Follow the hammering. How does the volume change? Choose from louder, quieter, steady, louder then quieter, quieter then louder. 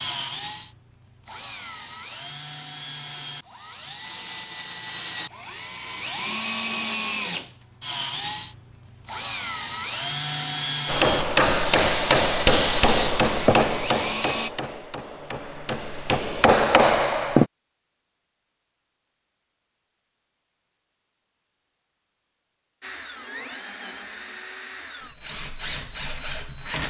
quieter then louder.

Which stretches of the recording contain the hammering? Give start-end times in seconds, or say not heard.
10.8-17.4.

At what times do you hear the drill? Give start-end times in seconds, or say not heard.
0.0-14.5, 22.8-26.8.